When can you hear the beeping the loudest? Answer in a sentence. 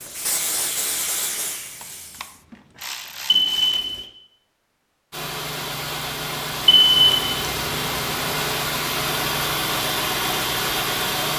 The volume of the beeping peaks at 7 seconds.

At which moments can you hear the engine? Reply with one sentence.
You can hear the engine from 5.1 to 11.3 s.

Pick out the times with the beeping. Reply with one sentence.
The beeping can be heard from 3.2 to 4.0 s and from 6.7 to 7.2 s.